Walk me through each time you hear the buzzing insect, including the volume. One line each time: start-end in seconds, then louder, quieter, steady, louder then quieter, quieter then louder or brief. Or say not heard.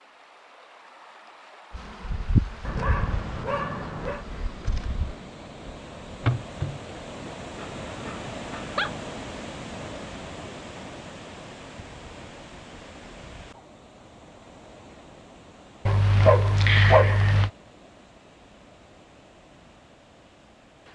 1.7-6.8 quieter then louder.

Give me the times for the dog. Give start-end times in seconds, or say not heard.
2.6-4.2, 7.5-8.9, 15.8-17.5.